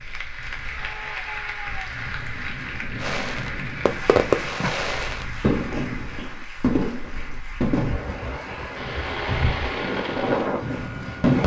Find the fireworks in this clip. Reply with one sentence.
You can hear the fireworks from 3.0 to 11.4 s.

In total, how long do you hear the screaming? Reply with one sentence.
You can hear the screaming for 2 seconds altogether.